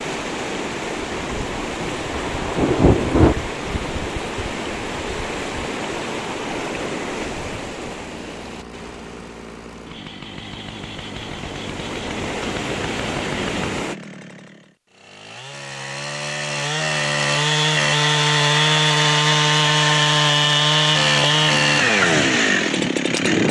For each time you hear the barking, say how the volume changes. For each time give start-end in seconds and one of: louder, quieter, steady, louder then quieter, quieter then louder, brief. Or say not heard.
not heard.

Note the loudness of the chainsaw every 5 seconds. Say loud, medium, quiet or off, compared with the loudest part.
off, quiet, quiet, loud, loud.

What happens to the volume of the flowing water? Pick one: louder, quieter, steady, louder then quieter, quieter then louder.
quieter then louder.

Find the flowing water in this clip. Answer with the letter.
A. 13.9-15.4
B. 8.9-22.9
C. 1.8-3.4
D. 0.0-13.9
D.